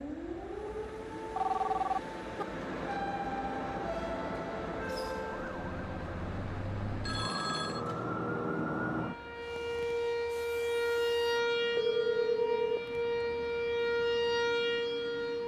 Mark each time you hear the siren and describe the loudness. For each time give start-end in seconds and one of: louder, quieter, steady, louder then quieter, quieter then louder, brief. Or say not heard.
0.0-15.4 louder.